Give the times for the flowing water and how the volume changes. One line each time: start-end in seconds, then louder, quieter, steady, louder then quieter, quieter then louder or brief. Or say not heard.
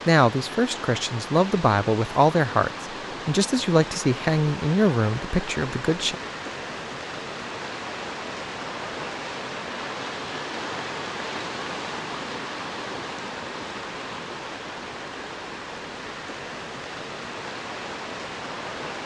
0.0-19.0 steady.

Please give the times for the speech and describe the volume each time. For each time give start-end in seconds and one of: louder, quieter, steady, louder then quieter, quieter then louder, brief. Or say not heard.
0.1-6.2 steady.